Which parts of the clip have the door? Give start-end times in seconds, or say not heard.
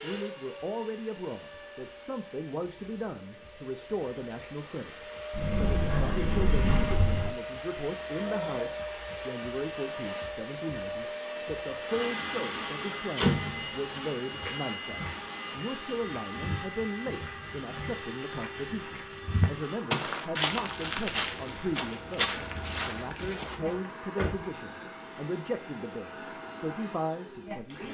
5.3-7.3, 12.6-13.7, 23.9-24.4.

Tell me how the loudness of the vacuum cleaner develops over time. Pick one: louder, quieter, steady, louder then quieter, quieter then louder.
louder then quieter.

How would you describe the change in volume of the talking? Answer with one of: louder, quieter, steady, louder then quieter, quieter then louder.
steady.